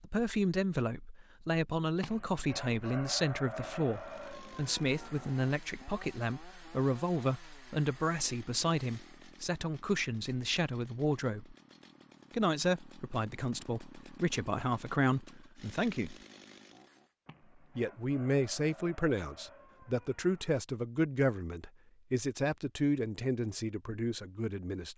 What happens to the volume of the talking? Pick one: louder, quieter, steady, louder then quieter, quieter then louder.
steady.